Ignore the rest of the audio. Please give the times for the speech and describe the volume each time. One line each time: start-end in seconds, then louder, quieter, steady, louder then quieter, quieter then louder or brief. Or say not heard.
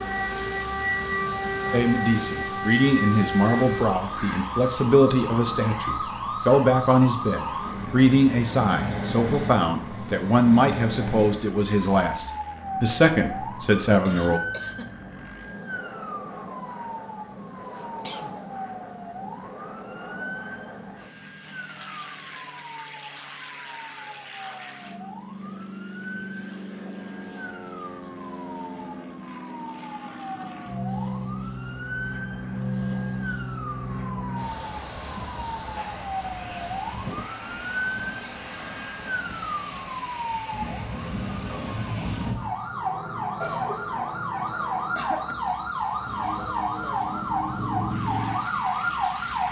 1.7-14.4 steady.